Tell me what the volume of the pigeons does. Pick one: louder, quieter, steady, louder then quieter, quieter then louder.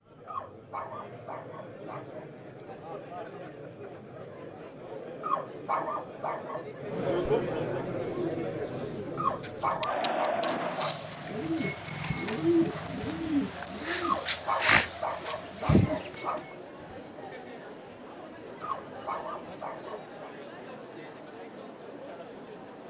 louder.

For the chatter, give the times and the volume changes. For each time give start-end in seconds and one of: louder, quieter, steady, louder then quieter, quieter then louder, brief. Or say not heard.
0.0-22.8 louder then quieter.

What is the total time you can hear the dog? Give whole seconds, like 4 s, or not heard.
10 s.